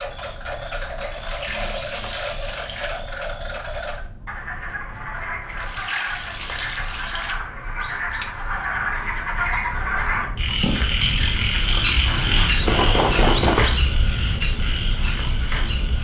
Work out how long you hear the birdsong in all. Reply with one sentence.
You can hear the birdsong for 16 seconds altogether.